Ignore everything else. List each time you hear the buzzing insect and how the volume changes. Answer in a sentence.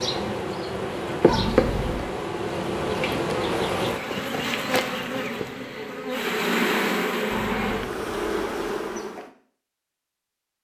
You can hear the buzzing insect from 0.0 to 9.3 s, at a steady volume.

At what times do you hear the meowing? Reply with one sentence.
The meowing can be heard from 1.2 to 2.1 s and from 7.3 to 7.8 s.